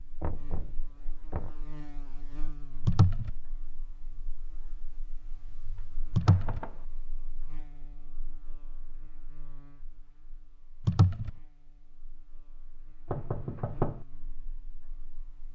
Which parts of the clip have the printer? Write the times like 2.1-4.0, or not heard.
not heard.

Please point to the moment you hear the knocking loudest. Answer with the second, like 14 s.
14 s.